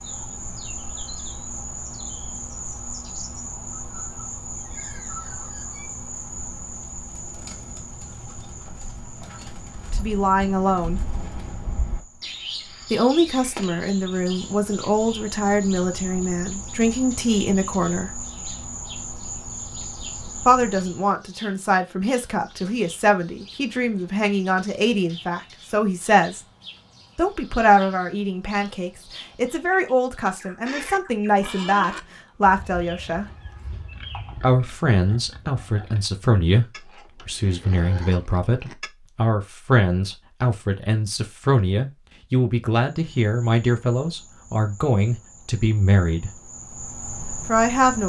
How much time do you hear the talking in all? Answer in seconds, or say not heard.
31 s.